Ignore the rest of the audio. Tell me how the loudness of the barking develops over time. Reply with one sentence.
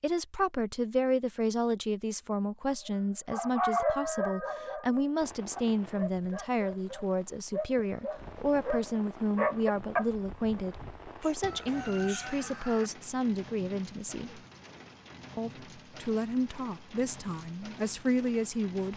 The loudness of the barking goes down, then up.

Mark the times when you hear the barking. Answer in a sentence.
The barking can be heard from 3.3 to 10.1 s.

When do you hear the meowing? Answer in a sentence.
The meowing can't be heard in this clip.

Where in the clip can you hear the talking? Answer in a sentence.
You can hear the talking from 0.0 to 14.4 s and from 15.3 to 18.9 s.